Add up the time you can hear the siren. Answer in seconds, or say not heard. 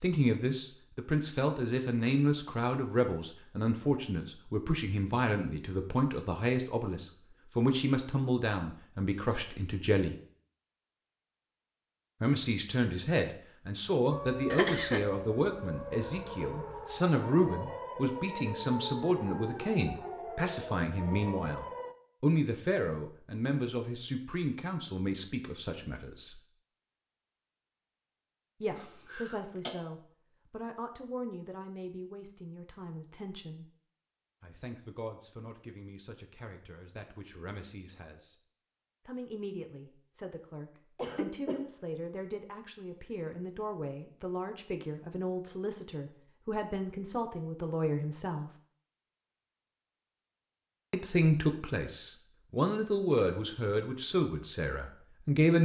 8 s.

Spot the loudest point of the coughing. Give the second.
15 s.